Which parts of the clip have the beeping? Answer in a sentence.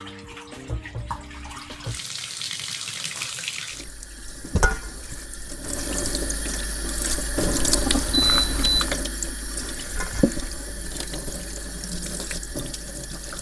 The beeping can be heard from 7.3 to 8.8 s.